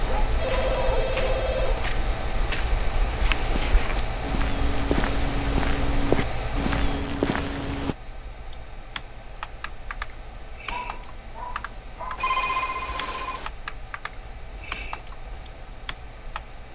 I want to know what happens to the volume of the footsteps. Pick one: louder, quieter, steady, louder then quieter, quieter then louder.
louder.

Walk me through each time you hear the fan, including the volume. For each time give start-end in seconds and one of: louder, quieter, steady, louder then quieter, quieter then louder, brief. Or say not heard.
0.0-16.6 quieter.